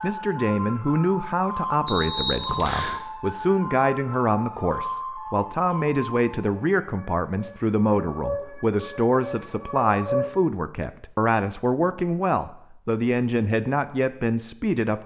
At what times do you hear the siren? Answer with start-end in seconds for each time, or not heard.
0.0-10.4.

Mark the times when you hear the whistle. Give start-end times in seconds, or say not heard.
1.9-3.0.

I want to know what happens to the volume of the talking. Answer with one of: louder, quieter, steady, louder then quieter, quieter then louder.
steady.